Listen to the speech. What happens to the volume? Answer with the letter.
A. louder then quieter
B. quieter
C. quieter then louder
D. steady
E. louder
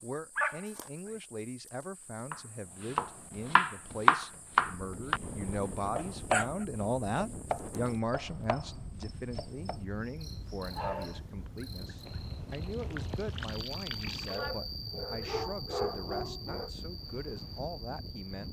A.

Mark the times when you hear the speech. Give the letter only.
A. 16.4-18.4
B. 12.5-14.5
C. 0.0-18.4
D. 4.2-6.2
C.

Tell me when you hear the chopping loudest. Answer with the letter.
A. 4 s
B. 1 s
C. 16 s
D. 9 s
A.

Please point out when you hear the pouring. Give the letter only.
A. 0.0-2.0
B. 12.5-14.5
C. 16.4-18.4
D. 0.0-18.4
B.